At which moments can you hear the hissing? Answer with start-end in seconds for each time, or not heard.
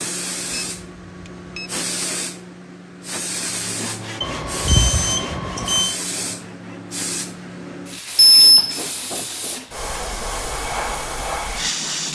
0.0-12.0.